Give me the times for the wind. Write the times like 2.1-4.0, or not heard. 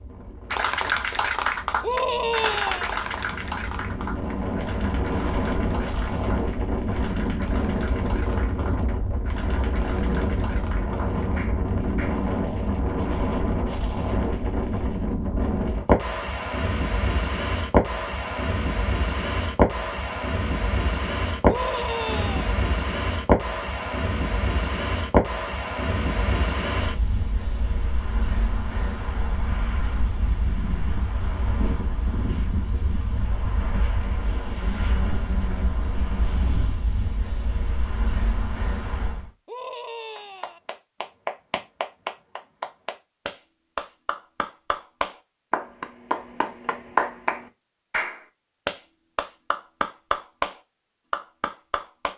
0.0-39.3.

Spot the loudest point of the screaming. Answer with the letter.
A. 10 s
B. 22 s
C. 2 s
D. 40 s
C.